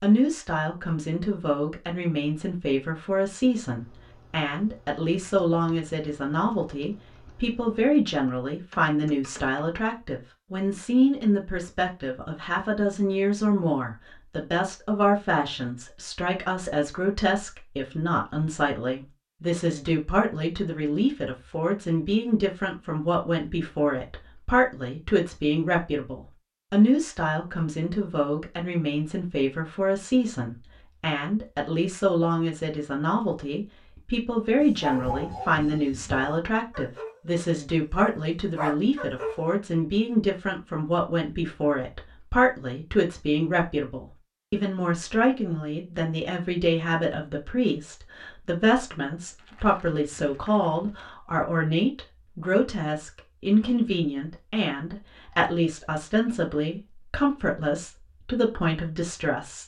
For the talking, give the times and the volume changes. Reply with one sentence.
You can hear the talking from 0.0 to 59.6 s, at a steady volume.